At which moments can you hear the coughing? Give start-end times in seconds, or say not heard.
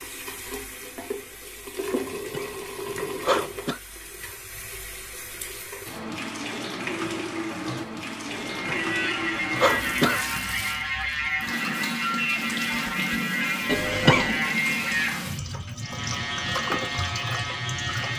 1.9-3.8, 8.3-10.2, 13.7-14.4.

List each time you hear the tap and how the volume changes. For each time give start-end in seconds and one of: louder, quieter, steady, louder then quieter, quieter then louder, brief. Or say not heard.
0.0-18.1 steady.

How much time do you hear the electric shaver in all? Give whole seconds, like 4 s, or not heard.
10 s.